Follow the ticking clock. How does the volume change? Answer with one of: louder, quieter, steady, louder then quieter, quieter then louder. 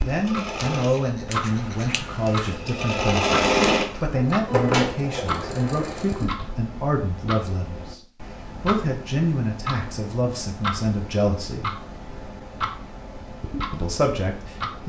steady.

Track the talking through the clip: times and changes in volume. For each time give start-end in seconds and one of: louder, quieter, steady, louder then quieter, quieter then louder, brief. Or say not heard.
0.0-11.7 steady
13.7-14.8 brief.